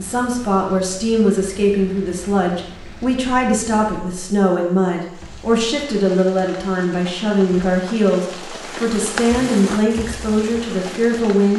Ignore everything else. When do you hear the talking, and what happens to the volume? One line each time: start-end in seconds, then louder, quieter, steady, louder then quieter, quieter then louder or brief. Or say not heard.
0.0-11.5 steady.